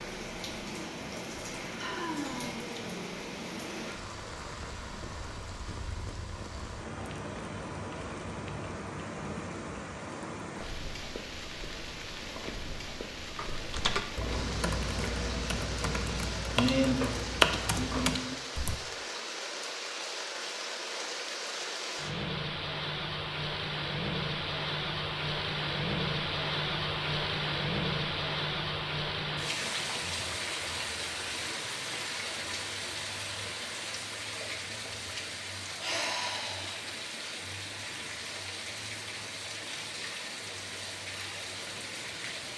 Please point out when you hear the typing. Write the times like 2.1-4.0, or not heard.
13.3-18.8.